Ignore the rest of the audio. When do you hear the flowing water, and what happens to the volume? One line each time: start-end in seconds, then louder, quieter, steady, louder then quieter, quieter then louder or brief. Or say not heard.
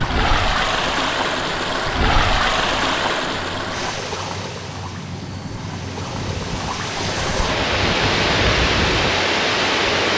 0.0-10.1 quieter then louder.